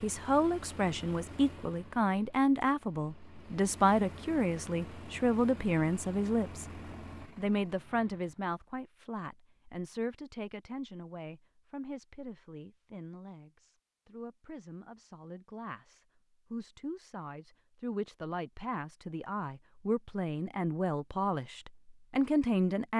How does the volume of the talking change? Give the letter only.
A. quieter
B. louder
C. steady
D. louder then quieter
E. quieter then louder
E.